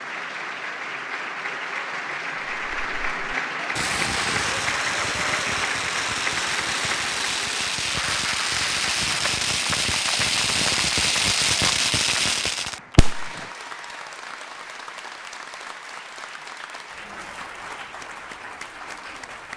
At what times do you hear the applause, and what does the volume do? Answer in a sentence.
The applause can be heard from 0.0 to 19.5 s, getting quieter.